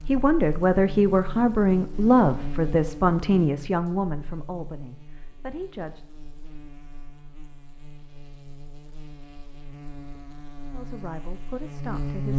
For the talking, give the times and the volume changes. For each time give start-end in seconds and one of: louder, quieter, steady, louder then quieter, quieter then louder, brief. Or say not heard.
0.1-6.0 quieter
10.7-12.3 brief.